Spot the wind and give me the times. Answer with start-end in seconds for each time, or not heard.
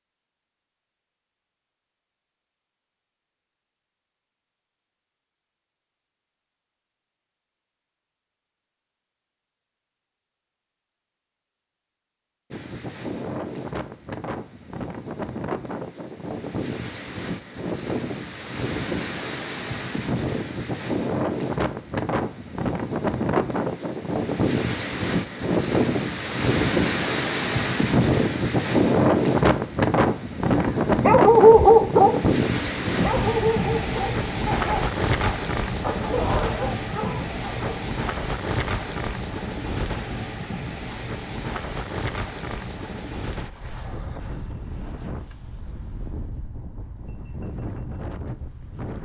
12.5-48.9.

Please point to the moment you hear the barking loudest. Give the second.
32 s.